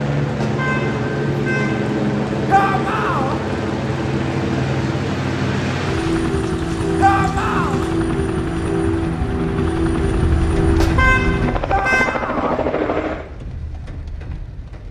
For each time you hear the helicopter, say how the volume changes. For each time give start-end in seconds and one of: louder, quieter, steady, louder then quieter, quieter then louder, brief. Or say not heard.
0.0-13.2 steady.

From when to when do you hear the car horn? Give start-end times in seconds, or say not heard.
0.2-1.9, 10.7-12.2.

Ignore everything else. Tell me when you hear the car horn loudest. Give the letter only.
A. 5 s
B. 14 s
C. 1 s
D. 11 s
D.